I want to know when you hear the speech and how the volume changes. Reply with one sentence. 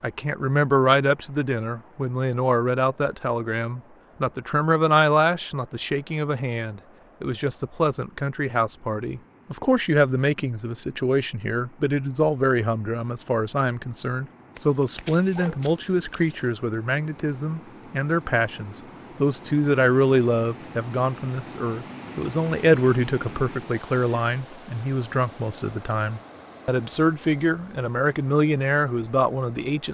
The speech can be heard from 0.0 to 29.8 s, at a steady volume.